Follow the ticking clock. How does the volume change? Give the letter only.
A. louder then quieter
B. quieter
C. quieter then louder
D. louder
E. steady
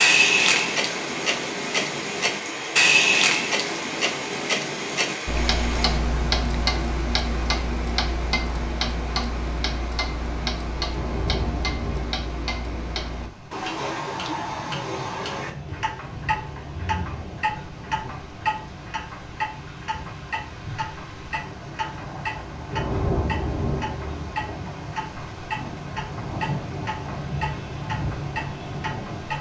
B.